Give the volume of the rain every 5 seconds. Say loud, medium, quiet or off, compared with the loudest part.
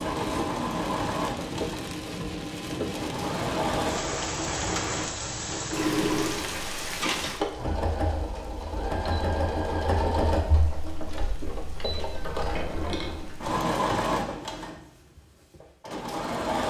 loud, loud, quiet, off.